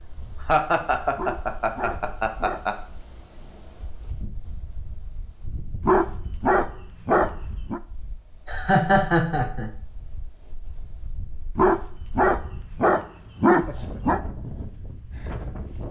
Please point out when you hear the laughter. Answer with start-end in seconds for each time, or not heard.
0.5-2.8, 8.4-9.7.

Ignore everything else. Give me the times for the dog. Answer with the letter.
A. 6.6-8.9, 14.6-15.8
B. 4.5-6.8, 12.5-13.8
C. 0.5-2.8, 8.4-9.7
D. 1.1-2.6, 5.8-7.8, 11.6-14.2
D.